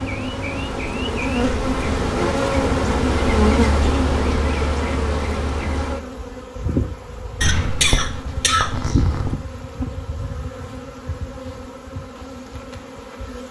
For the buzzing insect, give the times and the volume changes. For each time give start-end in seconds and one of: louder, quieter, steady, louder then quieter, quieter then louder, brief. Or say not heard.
0.0-13.4 quieter.